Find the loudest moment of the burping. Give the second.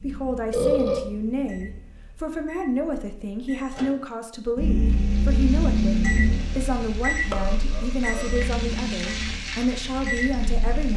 1 s.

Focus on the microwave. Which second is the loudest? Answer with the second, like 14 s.
6 s.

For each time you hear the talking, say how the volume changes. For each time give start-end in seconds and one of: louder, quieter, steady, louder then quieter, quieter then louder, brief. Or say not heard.
0.0-10.9 steady.